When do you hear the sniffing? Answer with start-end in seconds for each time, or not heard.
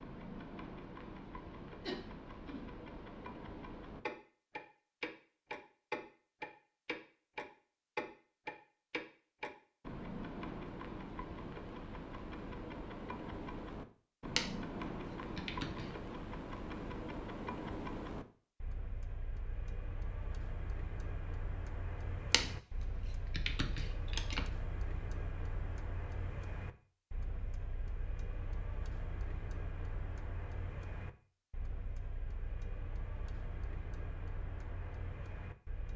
1.8-2.6.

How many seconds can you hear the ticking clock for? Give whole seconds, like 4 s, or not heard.
36 s.